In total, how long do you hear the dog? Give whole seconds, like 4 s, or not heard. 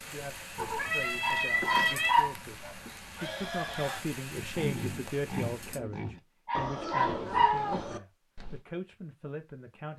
3 s.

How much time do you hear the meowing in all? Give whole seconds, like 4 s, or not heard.
2 s.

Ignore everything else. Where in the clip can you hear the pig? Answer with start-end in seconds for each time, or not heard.
3.1-8.7.